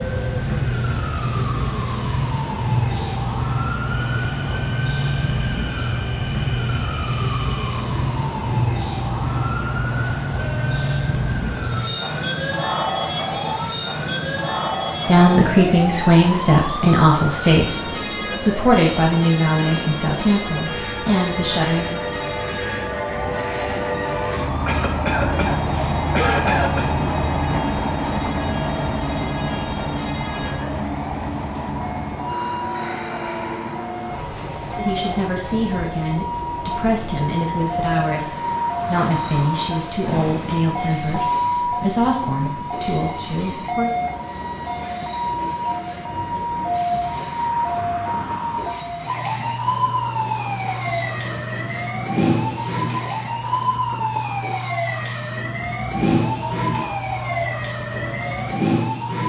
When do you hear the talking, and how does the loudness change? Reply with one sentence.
You can hear the talking from 15.1 to 21.9 s, getting quieter; and from 34.8 to 43.9 s, at a steady volume.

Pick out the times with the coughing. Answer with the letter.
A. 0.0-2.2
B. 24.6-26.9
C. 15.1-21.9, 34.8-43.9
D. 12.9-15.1
B.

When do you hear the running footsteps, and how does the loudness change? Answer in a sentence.
The running footsteps can't be heard in this clip.